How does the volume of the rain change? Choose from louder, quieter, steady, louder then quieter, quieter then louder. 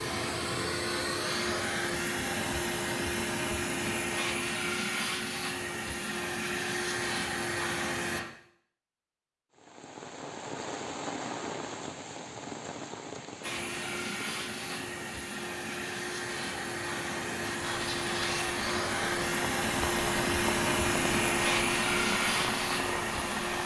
quieter then louder.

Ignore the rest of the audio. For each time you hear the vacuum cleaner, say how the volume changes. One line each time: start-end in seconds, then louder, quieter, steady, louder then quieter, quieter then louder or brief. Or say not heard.
0.0-8.2 steady
13.4-23.6 louder.